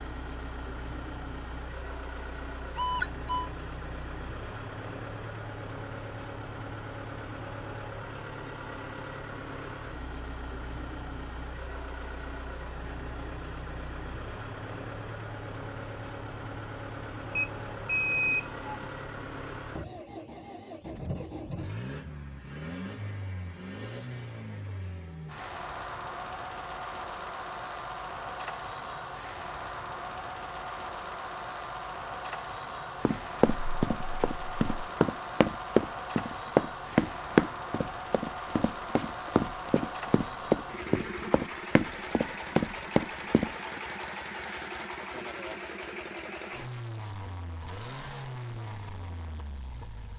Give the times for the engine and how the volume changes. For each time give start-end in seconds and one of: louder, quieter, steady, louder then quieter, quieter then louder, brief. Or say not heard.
0.0-50.1 steady.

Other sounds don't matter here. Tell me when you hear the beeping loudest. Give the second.
18 s.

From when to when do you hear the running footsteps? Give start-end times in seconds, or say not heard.
33.0-43.5.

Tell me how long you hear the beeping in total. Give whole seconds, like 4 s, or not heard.
4 s.